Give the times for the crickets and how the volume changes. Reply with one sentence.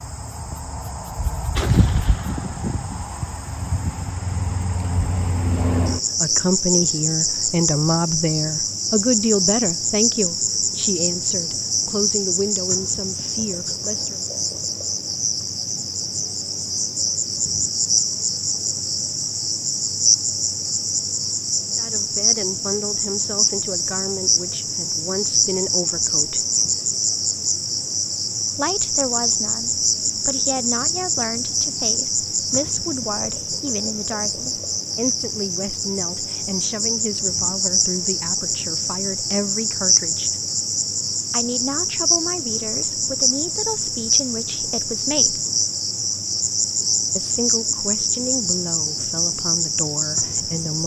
You can hear the crickets from 0.0 to 50.8 s, at a steady volume.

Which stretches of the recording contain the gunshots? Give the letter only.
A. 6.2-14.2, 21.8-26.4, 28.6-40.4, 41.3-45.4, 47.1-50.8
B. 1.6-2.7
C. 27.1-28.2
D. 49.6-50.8
B.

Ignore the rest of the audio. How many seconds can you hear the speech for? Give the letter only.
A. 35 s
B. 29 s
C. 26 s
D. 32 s
D.